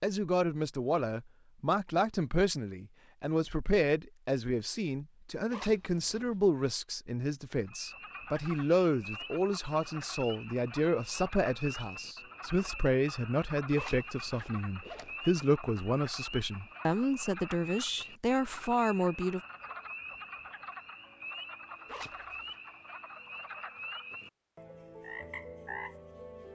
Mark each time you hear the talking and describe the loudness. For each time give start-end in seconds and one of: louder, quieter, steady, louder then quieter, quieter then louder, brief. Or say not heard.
0.0-19.4 steady.